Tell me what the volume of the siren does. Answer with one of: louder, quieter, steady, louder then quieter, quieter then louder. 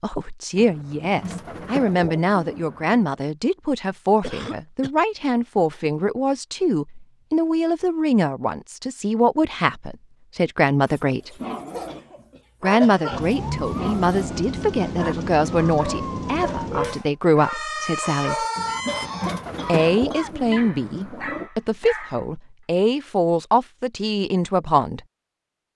steady.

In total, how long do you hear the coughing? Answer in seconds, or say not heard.
4 s.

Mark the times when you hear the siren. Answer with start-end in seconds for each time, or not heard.
13.1-19.1.